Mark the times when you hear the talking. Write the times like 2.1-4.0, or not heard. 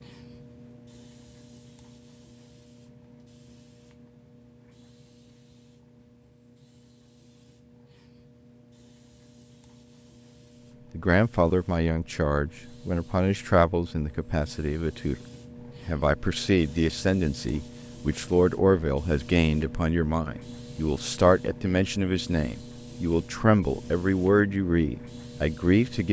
10.9-15.2, 15.8-26.0.